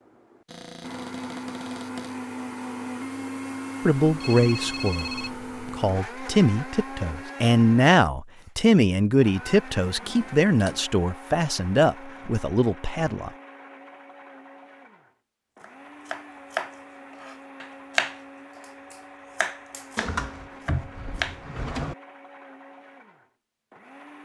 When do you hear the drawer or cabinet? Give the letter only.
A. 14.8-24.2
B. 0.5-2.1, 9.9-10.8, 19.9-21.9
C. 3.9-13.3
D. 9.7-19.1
B.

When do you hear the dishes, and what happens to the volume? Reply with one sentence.
You can't hear the dishes here.